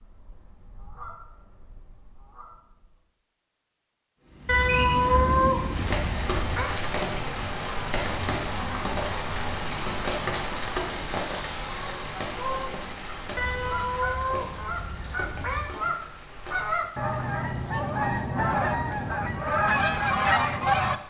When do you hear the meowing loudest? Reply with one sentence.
The loudest moment of the meowing is at 5 seconds.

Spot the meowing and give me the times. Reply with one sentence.
You can hear the meowing from 4.5 to 6.8 s and from 13.3 to 15.8 s.